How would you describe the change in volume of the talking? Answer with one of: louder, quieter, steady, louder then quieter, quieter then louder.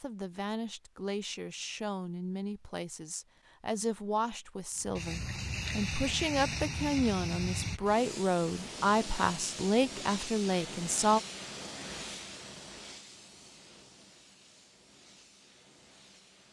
louder.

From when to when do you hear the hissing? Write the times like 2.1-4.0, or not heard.
4.8-16.4.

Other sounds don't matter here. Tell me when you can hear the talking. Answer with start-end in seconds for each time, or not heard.
0.0-11.2.